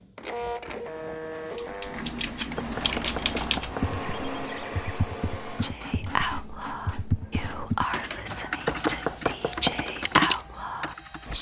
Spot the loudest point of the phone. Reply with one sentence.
The loudest moment of the phone is at 4 seconds.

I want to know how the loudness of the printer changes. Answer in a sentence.
The volume of the printer goes down.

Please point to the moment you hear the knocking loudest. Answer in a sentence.
The volume of the knocking peaks at 9 seconds.